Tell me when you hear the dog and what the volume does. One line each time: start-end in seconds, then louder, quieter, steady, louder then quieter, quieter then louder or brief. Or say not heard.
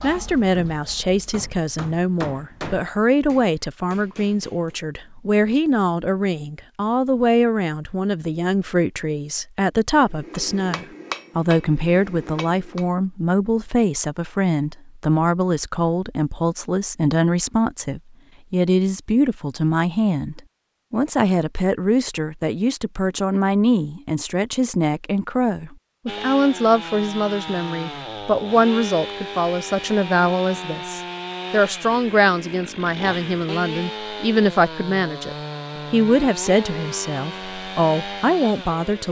not heard.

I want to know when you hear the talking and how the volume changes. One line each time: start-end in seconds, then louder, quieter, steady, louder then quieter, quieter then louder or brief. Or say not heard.
0.0-39.0 steady.